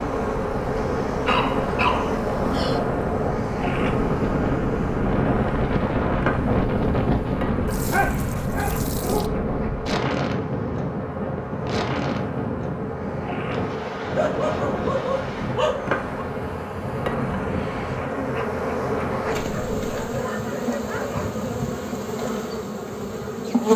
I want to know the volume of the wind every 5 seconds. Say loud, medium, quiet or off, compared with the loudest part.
loud, loud, loud, medium, off.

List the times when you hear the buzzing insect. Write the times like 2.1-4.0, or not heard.
0.0-23.7.